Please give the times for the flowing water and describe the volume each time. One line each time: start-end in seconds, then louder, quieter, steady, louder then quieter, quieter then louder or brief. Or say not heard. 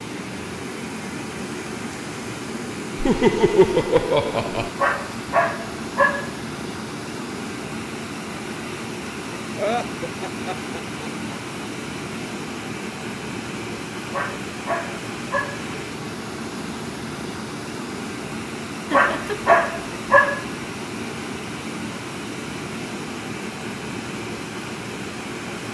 0.0-25.6 steady.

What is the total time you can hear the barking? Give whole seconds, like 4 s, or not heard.
4 s.